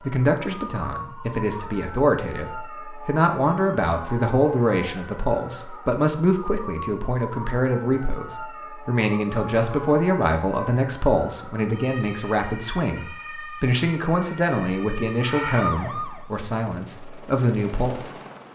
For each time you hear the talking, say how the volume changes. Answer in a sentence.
The talking can be heard from 0.0 to 18.1 s, at a steady volume.